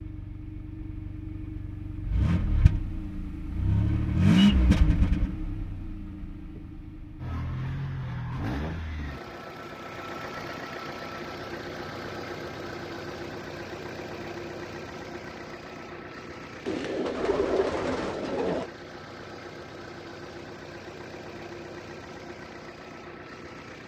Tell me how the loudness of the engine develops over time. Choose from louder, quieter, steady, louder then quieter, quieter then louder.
quieter.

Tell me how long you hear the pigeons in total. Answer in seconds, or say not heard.
2 s.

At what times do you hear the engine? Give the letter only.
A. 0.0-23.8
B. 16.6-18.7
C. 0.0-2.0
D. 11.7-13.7
A.